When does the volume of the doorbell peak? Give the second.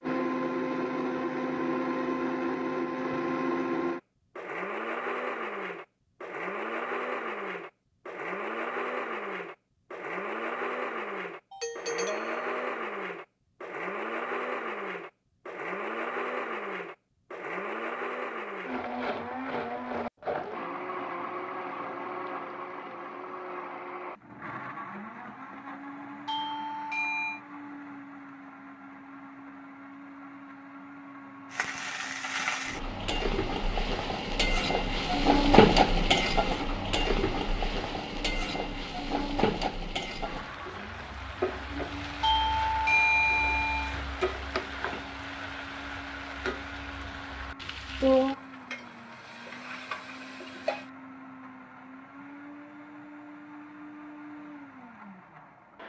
43 s.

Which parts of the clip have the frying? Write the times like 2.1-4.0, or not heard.
31.5-50.9.